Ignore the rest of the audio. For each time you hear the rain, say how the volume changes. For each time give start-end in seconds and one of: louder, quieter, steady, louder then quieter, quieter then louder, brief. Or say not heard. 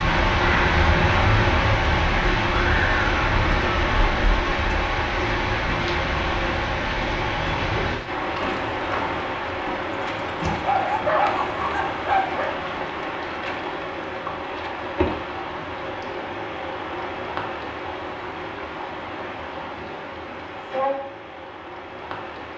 0.0-22.5 quieter.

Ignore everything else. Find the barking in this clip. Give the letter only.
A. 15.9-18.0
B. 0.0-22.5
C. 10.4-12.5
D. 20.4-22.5
C.